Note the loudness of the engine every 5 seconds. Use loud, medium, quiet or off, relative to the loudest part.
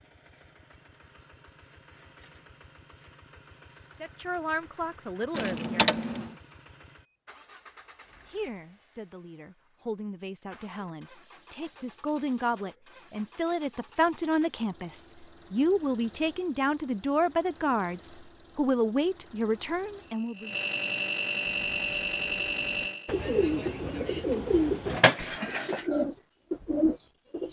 quiet, quiet, quiet, quiet, loud, off.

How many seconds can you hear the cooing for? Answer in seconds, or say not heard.
6 s.